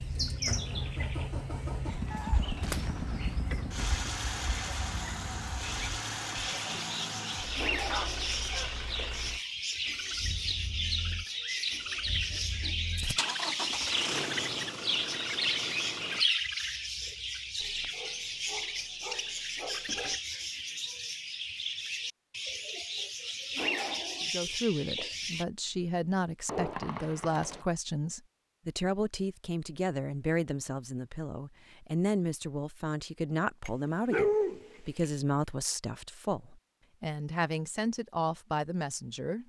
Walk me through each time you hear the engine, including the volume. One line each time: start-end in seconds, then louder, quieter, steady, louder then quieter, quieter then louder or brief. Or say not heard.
0.0-16.2 quieter then louder.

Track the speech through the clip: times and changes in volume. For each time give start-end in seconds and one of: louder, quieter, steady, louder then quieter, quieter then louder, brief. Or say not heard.
24.2-39.4 steady.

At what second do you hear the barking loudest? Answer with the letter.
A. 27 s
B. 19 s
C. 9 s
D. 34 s
D.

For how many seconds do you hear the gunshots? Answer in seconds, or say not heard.
3 s.